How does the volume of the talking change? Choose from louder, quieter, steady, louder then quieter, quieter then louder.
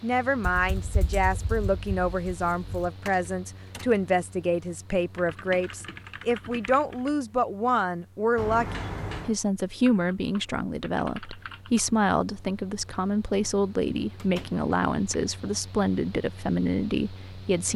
steady.